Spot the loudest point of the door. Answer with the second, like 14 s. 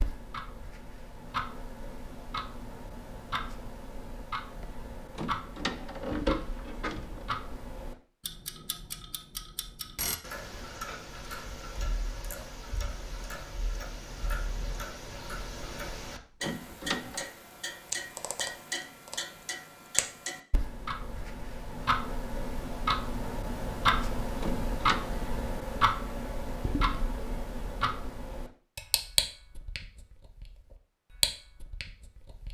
6 s.